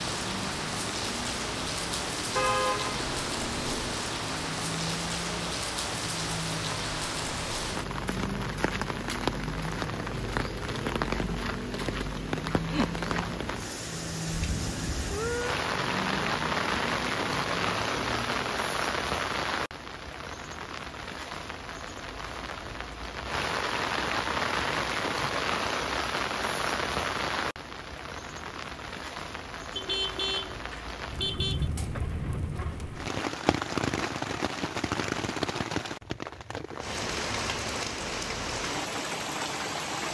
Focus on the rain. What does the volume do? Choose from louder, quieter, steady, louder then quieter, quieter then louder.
steady.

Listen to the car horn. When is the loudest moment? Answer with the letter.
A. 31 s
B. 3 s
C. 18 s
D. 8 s
B.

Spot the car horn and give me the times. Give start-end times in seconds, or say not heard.
2.4-3.8, 29.8-31.7.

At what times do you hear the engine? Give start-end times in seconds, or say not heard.
0.0-18.6.